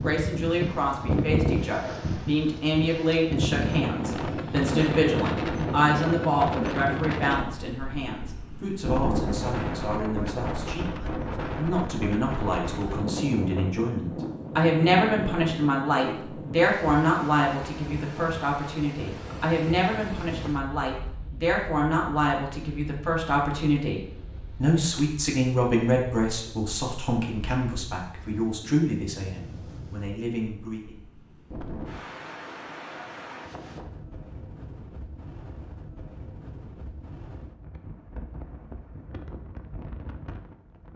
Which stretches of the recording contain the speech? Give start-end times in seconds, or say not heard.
0.0-31.0.